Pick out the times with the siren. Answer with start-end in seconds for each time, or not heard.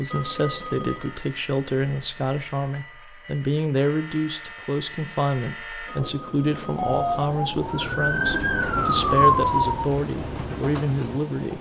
6.8-9.8.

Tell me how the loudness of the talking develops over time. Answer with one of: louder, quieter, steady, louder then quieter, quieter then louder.
steady.